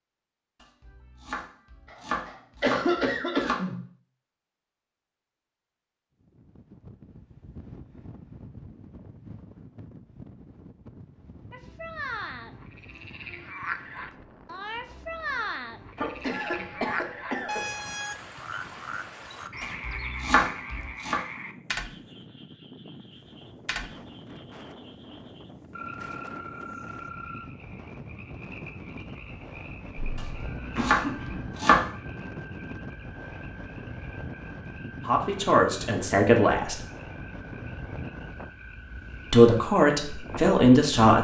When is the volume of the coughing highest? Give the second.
3 s.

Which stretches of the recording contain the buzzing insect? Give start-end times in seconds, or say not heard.
not heard.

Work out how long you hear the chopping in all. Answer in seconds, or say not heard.
6 s.